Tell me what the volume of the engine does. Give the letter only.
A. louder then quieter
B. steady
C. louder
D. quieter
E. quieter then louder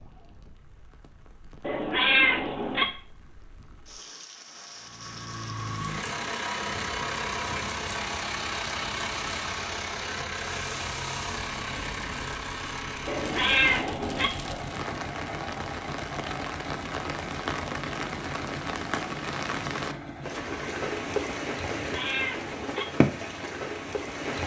D.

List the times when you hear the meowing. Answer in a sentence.
The meowing can be heard from 1.6 to 2.9 s, from 13.1 to 14.3 s and from 21.6 to 22.9 s.